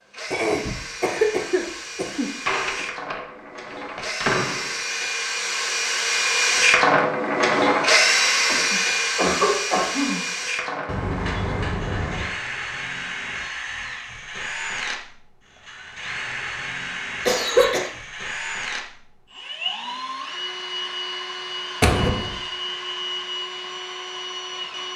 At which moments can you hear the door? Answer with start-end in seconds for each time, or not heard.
2.2-4.8, 10.8-12.3, 21.8-22.4.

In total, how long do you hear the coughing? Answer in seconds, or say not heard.
4 s.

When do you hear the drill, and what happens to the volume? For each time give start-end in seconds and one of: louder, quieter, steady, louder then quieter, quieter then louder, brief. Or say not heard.
0.0-24.9 louder then quieter.